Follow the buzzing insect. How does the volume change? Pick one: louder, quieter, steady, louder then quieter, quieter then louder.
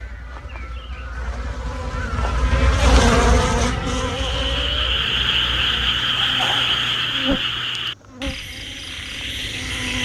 louder then quieter.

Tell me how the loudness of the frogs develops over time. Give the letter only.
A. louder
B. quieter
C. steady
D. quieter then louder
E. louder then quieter
B.